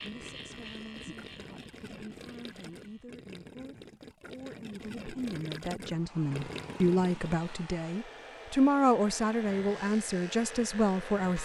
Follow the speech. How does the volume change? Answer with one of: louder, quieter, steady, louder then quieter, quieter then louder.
louder.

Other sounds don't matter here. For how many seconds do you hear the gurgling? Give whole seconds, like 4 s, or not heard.
8 s.